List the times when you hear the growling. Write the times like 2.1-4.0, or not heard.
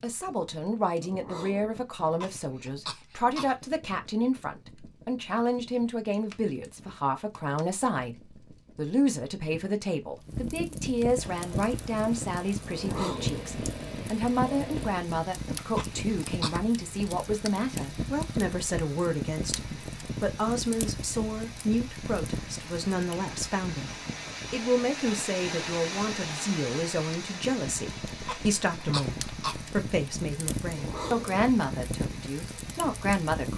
1.0-1.8, 12.7-14.9, 30.6-31.4.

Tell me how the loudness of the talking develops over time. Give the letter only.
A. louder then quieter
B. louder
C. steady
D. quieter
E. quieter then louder
C.